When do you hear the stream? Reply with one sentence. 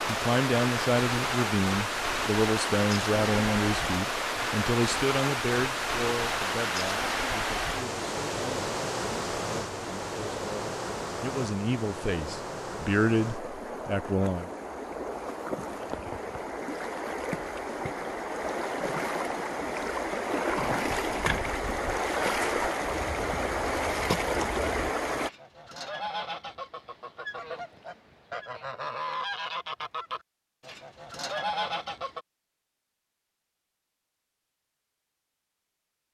You can hear the stream from 0.0 to 25.3 s.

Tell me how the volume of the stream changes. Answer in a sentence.
The loudness of the stream goes down, then up.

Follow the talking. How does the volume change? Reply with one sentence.
The loudness of the talking goes down, then up.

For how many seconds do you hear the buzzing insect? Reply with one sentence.
The buzzing insect can't be heard in this clip.